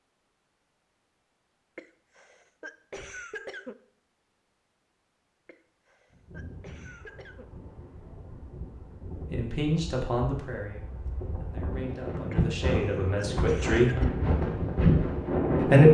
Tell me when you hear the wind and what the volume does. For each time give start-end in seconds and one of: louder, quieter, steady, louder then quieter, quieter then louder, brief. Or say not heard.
6.1-15.8 louder.